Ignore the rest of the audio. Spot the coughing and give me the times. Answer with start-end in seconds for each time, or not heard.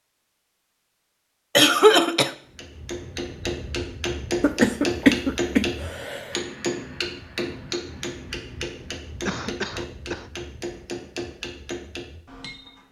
1.6-2.3, 4.4-6.3, 9.2-10.3.